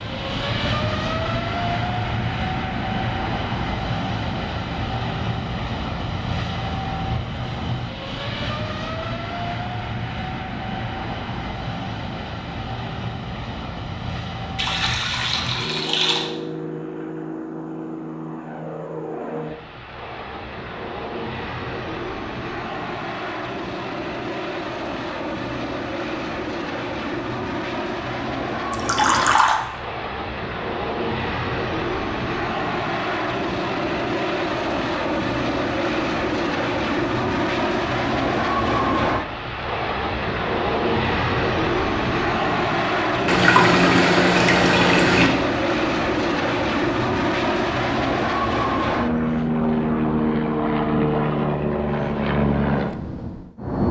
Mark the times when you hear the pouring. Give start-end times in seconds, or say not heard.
14.6-16.3, 28.7-29.6, 43.2-45.3.